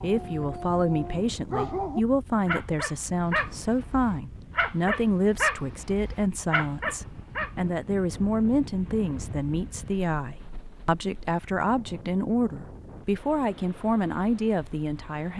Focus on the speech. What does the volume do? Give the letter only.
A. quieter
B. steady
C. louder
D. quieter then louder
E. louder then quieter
B.